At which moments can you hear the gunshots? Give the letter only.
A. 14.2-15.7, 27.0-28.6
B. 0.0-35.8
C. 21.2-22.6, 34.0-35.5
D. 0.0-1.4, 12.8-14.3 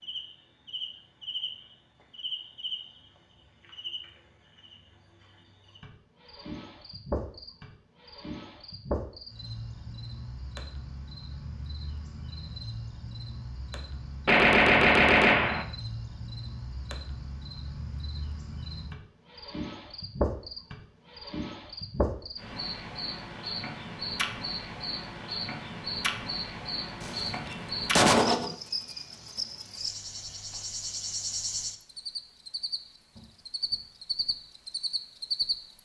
A.